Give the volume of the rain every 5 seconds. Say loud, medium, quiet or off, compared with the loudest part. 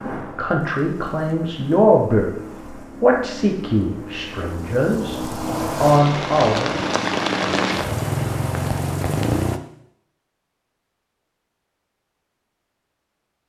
quiet, loud, off.